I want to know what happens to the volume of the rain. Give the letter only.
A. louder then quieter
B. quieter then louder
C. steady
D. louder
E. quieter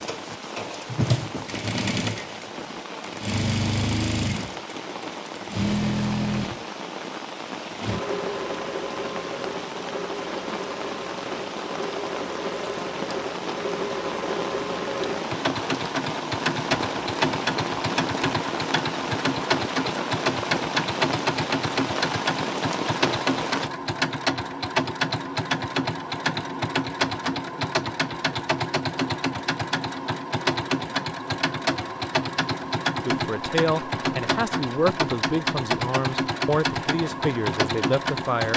D.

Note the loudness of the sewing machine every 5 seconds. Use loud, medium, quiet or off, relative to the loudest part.
loud, loud, medium, loud, loud, loud, loud, loud.